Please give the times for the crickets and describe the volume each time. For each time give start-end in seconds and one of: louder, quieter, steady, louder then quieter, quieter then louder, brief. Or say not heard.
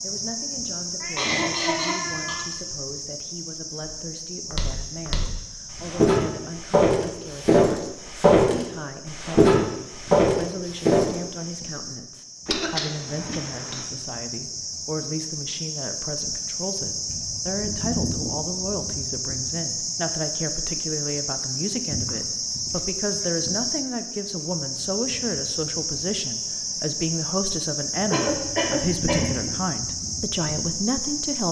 0.0-31.4 quieter then louder.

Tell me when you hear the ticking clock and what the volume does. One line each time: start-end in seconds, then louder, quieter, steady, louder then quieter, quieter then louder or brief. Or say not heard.
not heard.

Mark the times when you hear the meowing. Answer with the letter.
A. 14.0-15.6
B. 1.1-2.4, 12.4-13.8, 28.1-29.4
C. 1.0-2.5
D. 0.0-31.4
C.